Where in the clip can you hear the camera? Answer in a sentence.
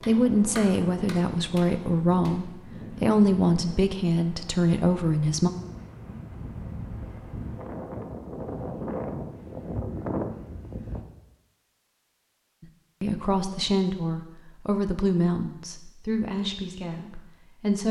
The camera can't be heard in this clip.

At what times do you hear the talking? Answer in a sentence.
The talking can be heard from 0.1 to 5.5 s and from 12.6 to 17.8 s.